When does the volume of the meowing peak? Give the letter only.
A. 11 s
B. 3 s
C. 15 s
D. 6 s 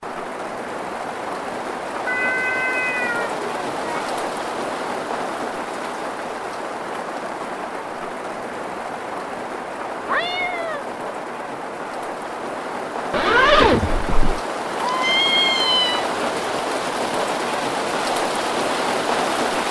C.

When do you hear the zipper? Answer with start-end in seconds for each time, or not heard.
13.1-14.4.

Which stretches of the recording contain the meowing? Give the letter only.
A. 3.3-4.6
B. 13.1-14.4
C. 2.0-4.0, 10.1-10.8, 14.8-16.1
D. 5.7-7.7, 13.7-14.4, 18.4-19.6
C.